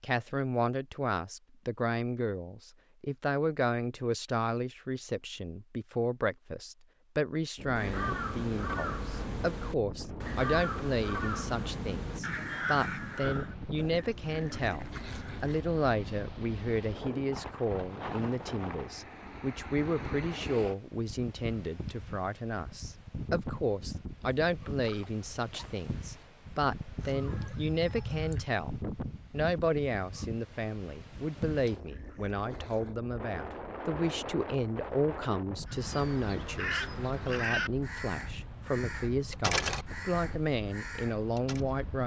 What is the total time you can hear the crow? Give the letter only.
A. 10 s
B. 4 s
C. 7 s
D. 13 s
D.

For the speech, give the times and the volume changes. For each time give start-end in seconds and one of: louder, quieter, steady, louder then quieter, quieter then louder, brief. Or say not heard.
0.0-42.0 steady.